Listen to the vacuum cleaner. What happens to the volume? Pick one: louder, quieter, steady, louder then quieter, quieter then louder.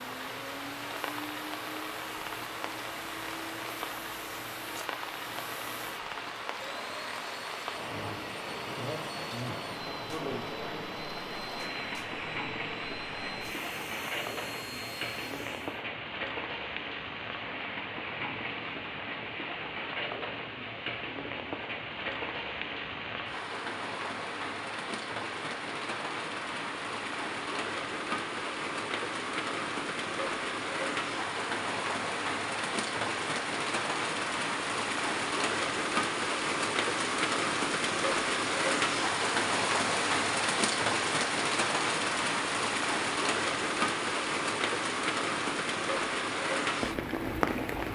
steady.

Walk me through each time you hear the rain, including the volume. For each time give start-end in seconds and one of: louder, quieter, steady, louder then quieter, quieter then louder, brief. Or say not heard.
0.0-47.9 louder.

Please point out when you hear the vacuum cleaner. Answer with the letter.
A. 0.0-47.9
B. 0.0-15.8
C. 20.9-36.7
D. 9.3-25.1
B.